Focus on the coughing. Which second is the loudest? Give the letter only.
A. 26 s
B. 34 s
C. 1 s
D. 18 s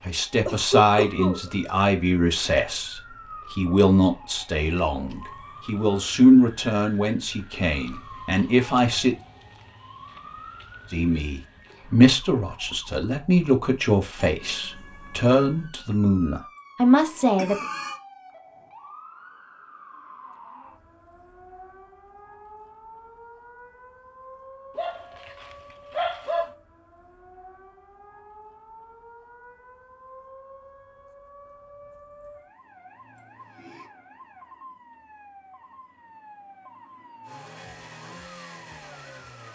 C.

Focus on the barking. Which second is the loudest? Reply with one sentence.
The loudest moment of the barking is at 26 seconds.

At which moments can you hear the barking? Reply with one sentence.
The barking can be heard from 24.8 to 26.5 s.